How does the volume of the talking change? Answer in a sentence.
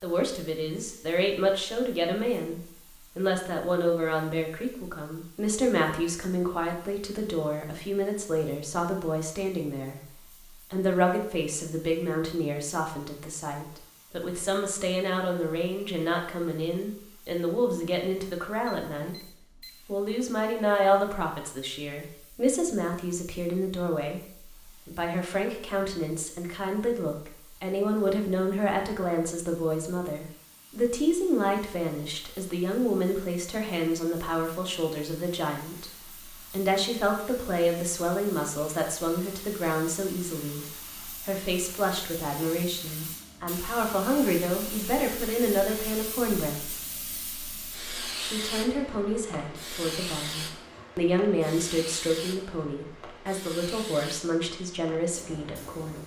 The volume of the talking stays about the same.